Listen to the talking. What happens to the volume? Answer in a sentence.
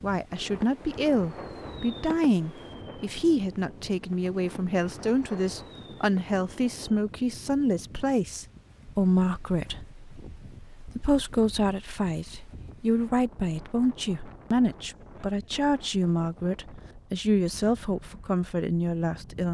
The volume of the talking stays about the same.